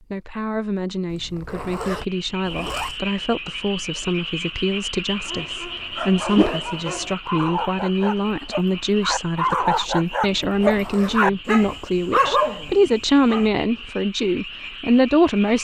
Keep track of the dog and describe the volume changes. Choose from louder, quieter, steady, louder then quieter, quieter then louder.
louder.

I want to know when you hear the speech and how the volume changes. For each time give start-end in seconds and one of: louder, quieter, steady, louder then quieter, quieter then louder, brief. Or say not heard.
0.0-15.5 louder.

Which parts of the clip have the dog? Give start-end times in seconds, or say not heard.
5.2-13.5.